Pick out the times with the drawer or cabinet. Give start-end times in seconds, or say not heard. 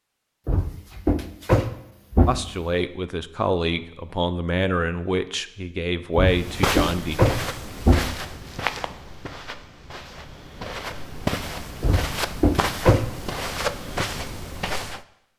0.5-2.5, 6.2-8.2, 11.8-13.1.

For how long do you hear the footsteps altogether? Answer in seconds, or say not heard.
9 s.